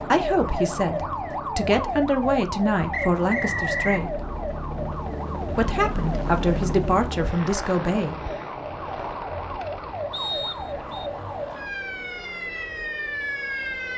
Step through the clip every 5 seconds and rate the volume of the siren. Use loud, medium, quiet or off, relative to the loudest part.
loud, medium, loud.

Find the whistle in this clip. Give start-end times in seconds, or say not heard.
2.9-4.0, 10.1-11.1.